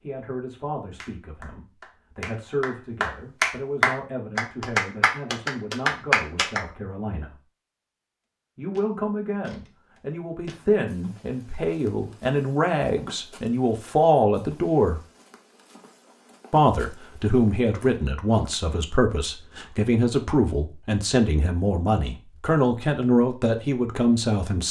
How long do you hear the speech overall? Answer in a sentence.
You can hear the speech for 22 seconds altogether.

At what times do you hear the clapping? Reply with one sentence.
You can hear the clapping from 1.0 to 6.7 s.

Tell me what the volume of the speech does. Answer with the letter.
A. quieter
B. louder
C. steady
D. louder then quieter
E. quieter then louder
B.